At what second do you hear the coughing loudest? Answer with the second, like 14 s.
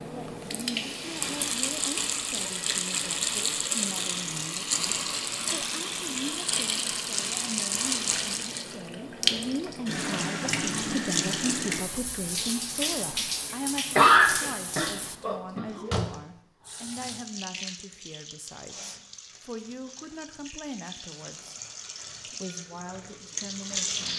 14 s.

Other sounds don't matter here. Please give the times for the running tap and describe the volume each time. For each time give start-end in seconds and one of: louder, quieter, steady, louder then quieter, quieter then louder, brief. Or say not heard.
0.0-24.1 quieter.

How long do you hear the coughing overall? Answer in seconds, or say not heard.
2 s.